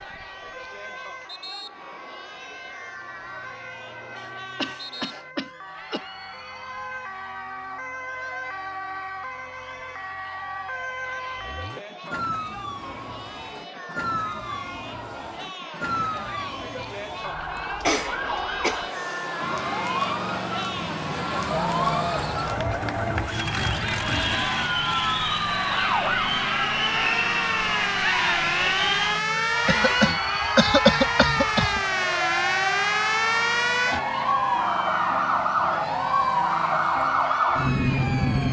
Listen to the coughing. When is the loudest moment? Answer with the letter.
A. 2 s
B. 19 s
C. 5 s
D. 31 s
D.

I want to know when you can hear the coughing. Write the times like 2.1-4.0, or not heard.
4.2-6.0, 17.8-19.3, 29.6-31.8.